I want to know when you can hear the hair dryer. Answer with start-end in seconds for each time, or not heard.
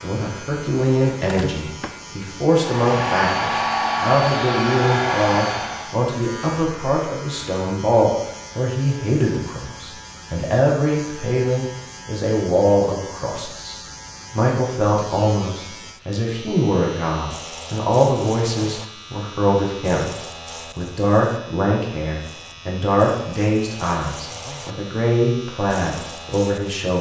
2.5-5.9.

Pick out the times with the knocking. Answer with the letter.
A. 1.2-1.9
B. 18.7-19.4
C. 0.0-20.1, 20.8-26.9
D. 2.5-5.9
A.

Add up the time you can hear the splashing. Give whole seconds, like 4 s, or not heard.
not heard.